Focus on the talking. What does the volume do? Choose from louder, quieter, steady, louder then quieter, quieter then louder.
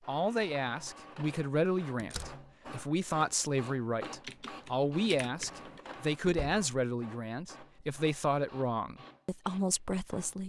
steady.